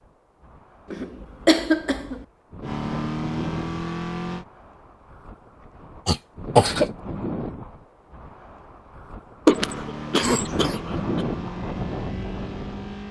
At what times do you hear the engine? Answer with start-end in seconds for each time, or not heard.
2.6-4.5, 9.4-13.0.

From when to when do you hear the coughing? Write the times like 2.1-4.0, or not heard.
0.9-2.2, 6.0-6.9, 9.4-11.2.